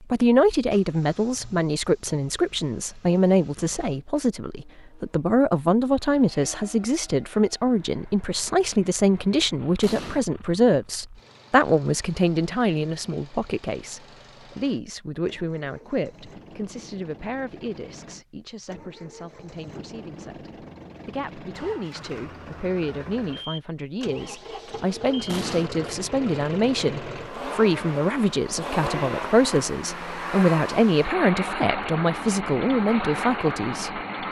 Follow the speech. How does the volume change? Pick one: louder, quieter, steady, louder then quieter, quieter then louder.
quieter then louder.